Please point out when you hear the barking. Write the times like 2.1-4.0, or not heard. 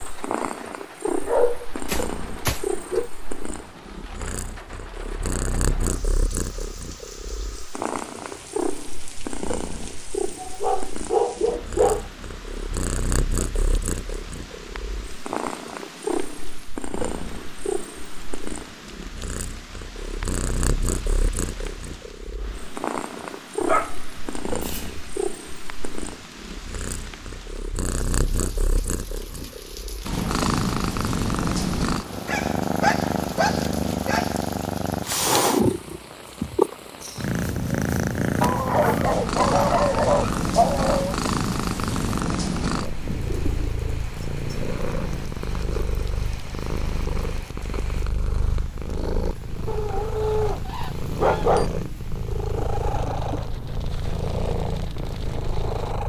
1.2-3.1, 10.4-12.1, 23.6-25.1, 32.2-34.8, 38.4-41.1, 49.6-51.7.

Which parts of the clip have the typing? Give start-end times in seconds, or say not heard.
not heard.